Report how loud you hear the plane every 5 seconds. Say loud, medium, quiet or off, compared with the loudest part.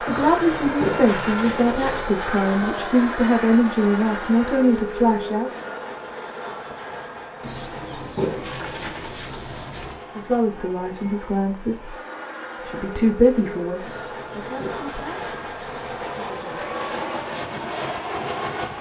loud, medium, medium, loud.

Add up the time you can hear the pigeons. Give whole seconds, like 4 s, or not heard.
7 s.